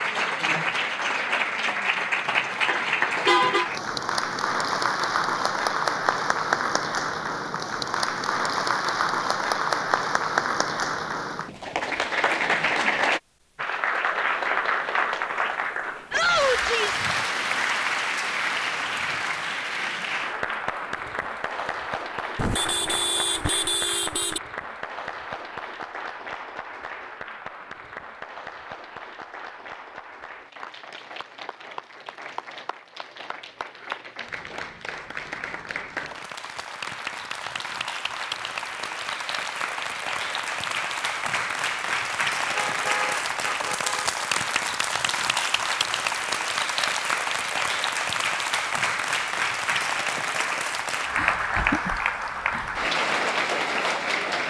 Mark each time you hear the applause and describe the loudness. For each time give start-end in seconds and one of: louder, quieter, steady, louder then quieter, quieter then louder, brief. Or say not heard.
0.0-54.4 quieter then louder.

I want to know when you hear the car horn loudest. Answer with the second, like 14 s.
3 s.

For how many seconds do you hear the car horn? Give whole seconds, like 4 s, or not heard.
5 s.